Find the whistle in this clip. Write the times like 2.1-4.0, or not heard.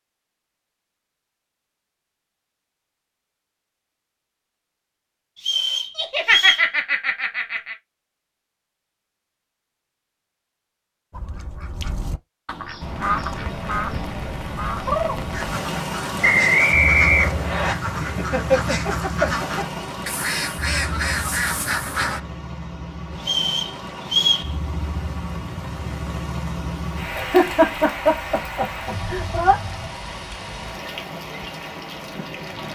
5.3-6.7, 16.2-17.8, 23.2-24.5.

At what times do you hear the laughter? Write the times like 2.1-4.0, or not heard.
6.0-7.8, 17.9-19.8, 27.1-29.6.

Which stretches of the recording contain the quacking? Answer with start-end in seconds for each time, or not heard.
11.1-22.2.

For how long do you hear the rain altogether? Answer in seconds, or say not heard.
20 s.